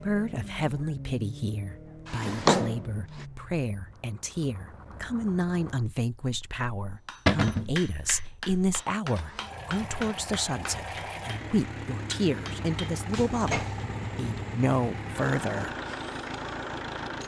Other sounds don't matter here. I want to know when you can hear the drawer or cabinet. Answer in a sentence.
You can hear the drawer or cabinet from 2.1 to 2.9 s, from 7.2 to 7.7 s and from 13.1 to 14.6 s.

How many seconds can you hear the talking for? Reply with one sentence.
You can hear the talking for 16 seconds altogether.